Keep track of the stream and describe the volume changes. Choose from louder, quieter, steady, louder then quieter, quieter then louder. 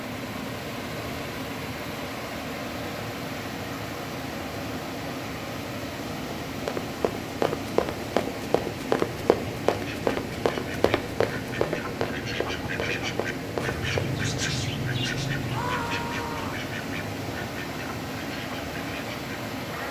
steady.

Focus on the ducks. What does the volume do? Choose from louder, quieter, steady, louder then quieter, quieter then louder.
louder then quieter.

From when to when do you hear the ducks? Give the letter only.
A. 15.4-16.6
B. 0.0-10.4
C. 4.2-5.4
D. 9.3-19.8
D.